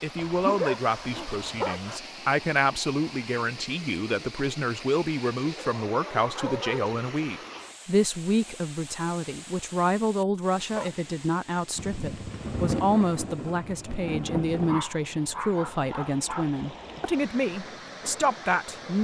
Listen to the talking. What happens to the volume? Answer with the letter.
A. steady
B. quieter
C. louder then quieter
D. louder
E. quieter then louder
A.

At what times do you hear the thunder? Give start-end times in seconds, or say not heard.
11.8-14.8.